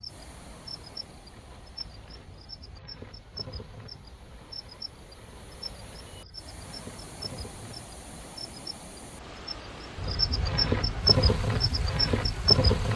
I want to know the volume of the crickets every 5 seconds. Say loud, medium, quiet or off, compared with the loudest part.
quiet, quiet, loud.